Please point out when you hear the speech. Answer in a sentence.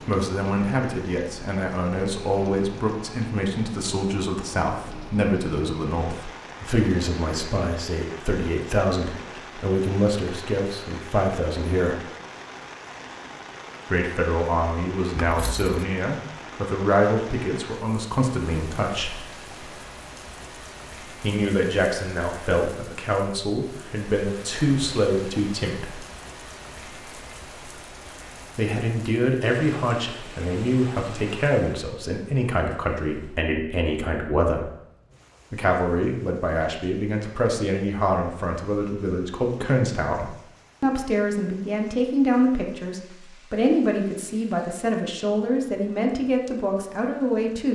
The speech can be heard from 0.1 to 12.0 s, from 13.9 to 19.2 s, from 21.1 to 26.1 s, from 28.6 to 34.7 s and from 35.5 to 47.7 s.